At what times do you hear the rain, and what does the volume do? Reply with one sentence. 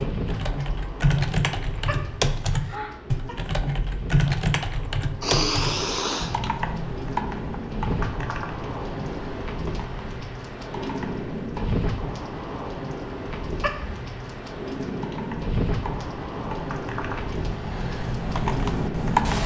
The rain can be heard from 0.0 to 19.4 s, getting louder.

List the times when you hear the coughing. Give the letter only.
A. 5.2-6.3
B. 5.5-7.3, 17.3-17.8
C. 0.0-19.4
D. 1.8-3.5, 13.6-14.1
D.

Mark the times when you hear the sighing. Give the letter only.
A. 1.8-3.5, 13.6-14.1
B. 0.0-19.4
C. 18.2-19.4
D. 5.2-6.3
D.